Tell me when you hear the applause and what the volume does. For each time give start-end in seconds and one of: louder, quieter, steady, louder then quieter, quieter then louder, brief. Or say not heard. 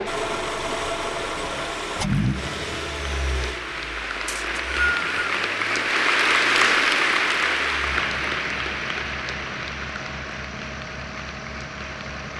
0.0-12.3 louder then quieter.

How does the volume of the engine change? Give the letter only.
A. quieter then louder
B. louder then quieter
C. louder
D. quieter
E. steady
D.